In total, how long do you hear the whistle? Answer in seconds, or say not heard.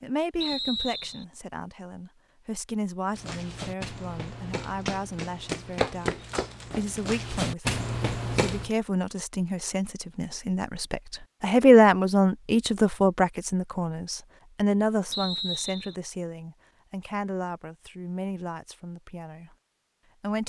2 s.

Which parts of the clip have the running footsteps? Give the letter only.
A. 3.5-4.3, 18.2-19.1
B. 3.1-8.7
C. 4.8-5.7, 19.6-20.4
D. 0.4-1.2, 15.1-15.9
B.